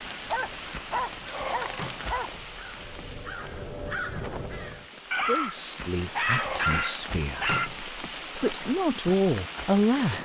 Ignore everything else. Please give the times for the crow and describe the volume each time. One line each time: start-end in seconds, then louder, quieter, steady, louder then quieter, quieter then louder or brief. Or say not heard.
0.0-4.9 louder.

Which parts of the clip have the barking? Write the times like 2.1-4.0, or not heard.
0.3-2.3, 5.1-7.7.